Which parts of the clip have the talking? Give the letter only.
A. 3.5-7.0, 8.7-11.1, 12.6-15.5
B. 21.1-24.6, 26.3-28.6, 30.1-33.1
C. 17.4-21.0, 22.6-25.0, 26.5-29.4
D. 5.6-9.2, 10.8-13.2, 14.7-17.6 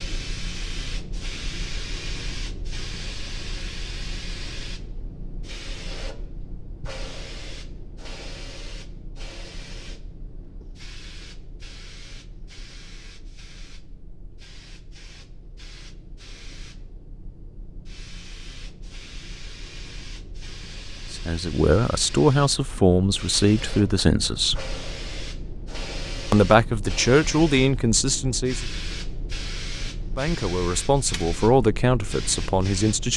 B.